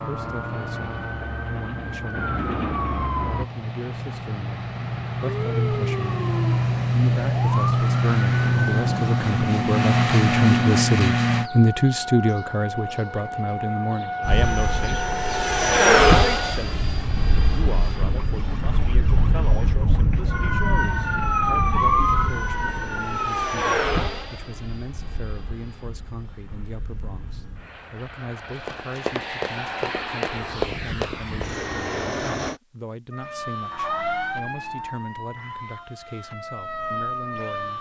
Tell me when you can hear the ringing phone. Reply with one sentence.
The ringing phone can't be heard in this clip.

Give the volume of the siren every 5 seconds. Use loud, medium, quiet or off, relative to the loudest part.
medium, medium, medium, medium, loud, off, medium, medium.